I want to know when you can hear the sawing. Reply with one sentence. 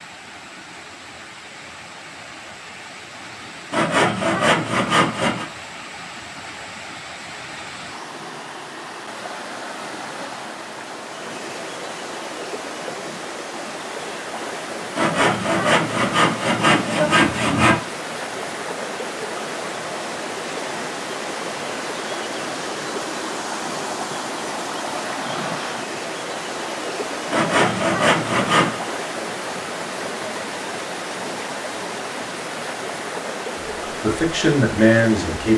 You can hear the sawing from 3.7 to 5.5 s, from 14.9 to 17.8 s and from 27.3 to 28.8 s.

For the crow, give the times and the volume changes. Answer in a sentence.
The crow can't be heard in this clip.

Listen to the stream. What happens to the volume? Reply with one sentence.
The loudness of the stream goes up.